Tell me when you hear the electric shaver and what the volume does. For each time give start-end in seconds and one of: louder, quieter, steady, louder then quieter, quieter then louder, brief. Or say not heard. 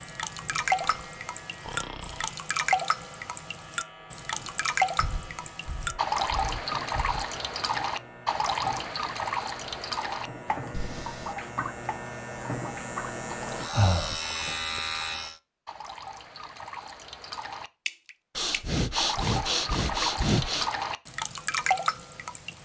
0.0-15.4 louder.